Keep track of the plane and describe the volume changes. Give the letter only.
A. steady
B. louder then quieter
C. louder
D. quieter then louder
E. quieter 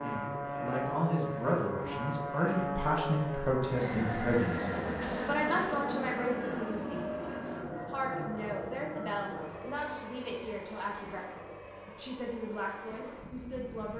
E.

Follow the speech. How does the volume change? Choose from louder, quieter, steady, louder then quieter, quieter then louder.
quieter.